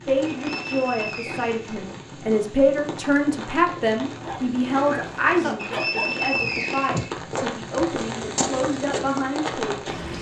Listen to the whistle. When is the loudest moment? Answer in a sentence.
The loudest moment of the whistle is at 6 seconds.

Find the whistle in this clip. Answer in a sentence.
You can hear the whistle from 0.2 to 1.8 s and from 5.5 to 7.1 s.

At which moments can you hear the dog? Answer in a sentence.
The dog can be heard from 4.2 to 6.2 s.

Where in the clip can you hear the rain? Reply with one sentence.
You can hear the rain from 0.0 to 10.1 s.